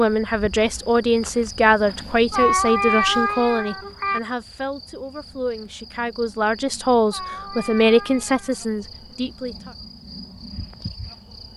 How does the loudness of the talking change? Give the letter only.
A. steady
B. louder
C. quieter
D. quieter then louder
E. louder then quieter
D.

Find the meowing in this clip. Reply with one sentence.
You can hear the meowing from 2.3 to 4.2 s and from 7.0 to 8.6 s.